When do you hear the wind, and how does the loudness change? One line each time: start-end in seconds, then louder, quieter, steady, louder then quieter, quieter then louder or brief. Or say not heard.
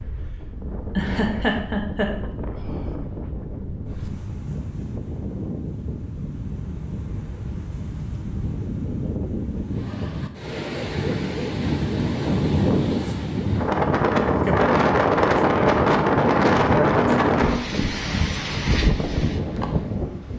0.0-20.3 louder.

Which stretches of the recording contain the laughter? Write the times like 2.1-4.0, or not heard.
0.9-2.3, 16.6-17.7.